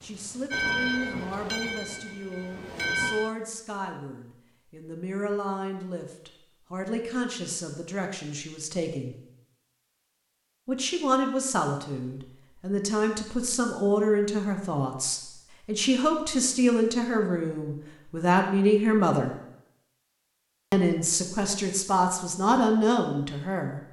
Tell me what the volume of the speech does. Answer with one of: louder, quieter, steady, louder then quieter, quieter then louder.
louder.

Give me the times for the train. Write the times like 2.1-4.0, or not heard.
0.0-3.3.